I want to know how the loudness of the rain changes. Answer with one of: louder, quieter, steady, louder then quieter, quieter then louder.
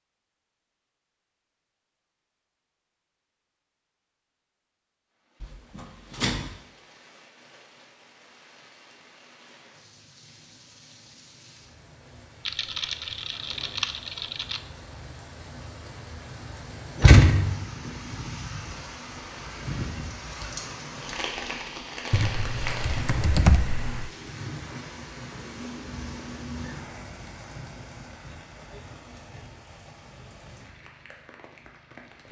louder then quieter.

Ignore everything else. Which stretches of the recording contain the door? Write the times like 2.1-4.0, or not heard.
5.4-6.5, 17.0-17.6.